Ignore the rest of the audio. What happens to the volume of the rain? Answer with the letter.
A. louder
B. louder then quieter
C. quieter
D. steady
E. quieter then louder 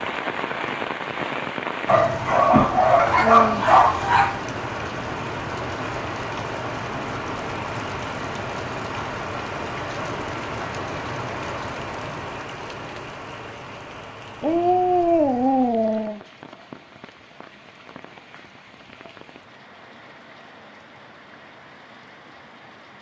C.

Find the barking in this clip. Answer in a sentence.
You can hear the barking from 1.9 to 4.4 s and from 14.4 to 16.2 s.